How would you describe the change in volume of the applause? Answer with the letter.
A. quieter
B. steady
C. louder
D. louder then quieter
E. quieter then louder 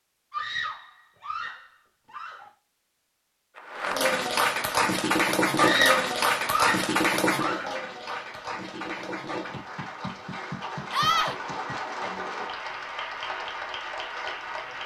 A.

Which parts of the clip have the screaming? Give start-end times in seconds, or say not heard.
0.3-2.5, 5.5-7.8, 10.9-11.3.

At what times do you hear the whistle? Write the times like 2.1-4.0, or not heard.
not heard.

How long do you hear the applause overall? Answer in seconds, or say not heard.
11 s.